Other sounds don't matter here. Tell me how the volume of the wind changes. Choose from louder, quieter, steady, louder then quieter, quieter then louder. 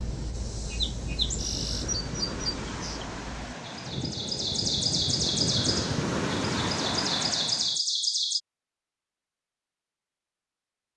louder.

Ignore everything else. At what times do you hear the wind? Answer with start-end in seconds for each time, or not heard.
0.0-7.8.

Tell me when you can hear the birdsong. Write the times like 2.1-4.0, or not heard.
0.0-8.4.